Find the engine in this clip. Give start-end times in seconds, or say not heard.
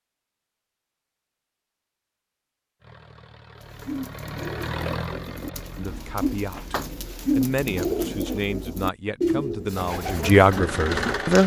2.8-6.9, 10.0-11.4.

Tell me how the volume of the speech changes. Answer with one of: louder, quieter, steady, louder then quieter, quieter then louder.
louder.